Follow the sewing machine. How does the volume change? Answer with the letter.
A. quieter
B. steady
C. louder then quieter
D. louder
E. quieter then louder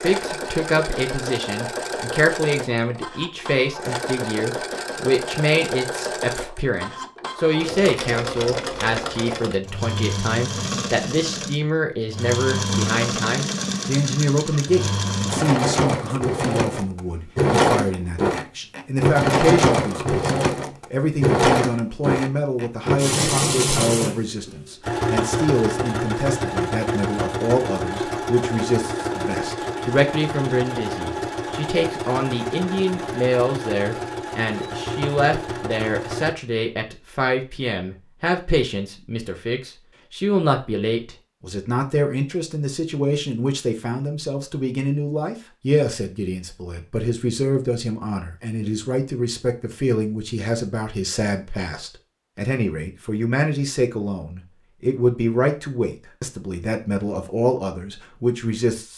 C.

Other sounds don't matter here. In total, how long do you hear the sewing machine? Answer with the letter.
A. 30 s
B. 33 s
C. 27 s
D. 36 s
D.